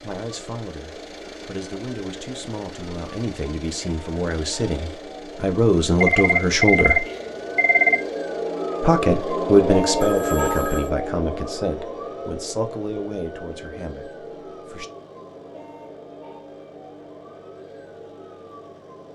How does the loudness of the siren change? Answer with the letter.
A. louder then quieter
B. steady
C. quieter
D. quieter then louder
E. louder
A.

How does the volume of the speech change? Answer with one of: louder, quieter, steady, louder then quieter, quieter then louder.
louder then quieter.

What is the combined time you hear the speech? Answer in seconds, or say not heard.
13 s.